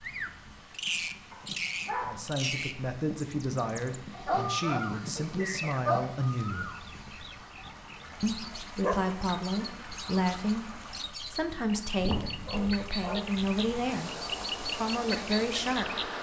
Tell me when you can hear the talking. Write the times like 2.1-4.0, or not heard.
2.0-6.7, 8.2-16.1.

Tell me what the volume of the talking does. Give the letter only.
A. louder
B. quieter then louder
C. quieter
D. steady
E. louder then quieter
D.